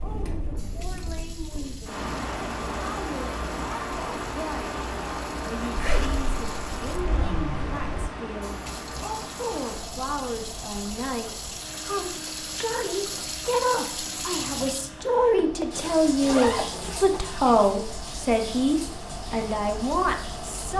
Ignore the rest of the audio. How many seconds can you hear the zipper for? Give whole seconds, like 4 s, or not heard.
4 s.